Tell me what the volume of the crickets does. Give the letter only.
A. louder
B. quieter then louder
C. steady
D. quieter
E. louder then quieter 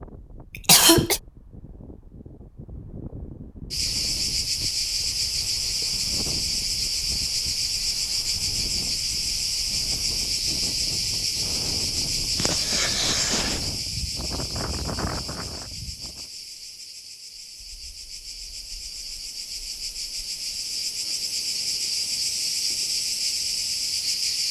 B.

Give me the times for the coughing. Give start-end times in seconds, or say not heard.
0.5-1.2, 12.3-13.6.